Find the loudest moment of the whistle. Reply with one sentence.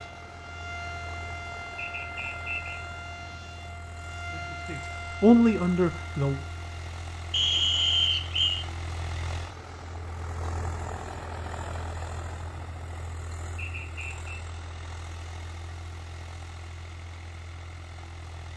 The volume of the whistle peaks at 8 seconds.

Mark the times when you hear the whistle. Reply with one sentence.
The whistle can be heard from 1.8 to 2.8 s, from 7.3 to 8.7 s and from 13.6 to 14.4 s.